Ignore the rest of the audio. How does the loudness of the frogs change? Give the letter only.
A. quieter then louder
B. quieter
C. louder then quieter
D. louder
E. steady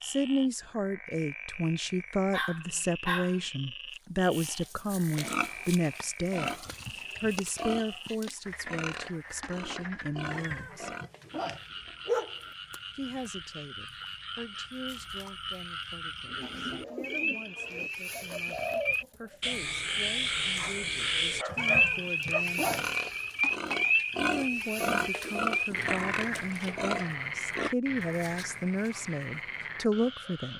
C.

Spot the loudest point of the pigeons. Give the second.
19 s.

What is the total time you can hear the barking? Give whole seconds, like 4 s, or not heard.
3 s.